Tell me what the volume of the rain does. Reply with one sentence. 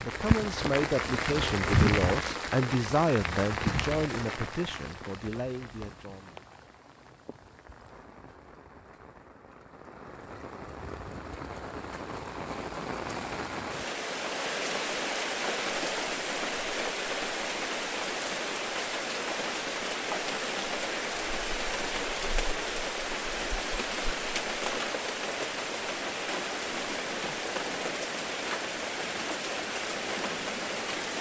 The loudness of the rain goes down, then up.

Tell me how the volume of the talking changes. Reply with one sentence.
The volume of the talking goes down.